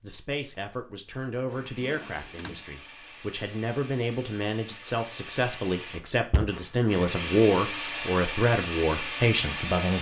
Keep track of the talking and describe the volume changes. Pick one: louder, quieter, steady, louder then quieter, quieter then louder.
louder.